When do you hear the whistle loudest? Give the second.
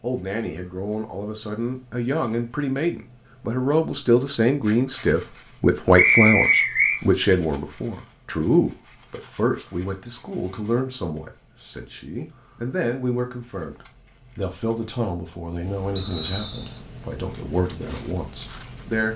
6 s.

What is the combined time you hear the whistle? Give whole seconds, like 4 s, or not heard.
2 s.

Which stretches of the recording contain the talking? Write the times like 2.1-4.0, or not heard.
0.0-19.1.